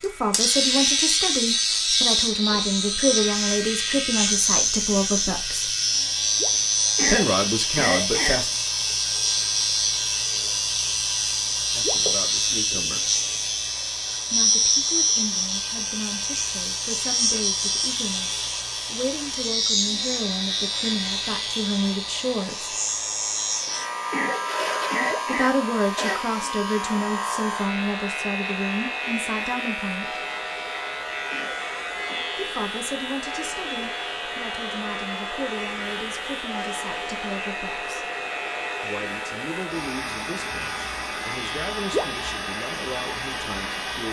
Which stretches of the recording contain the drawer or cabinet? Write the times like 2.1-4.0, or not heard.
not heard.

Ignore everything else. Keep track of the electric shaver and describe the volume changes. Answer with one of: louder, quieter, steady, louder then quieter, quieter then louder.
quieter.